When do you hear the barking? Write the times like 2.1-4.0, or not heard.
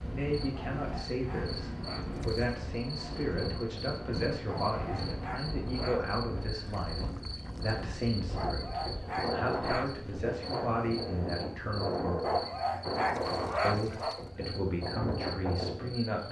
0.5-2.2, 4.5-6.2, 8.3-9.9, 12.2-14.2.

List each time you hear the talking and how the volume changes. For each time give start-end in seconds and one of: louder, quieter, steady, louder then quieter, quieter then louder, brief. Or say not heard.
0.0-12.4 steady
13.6-16.2 brief.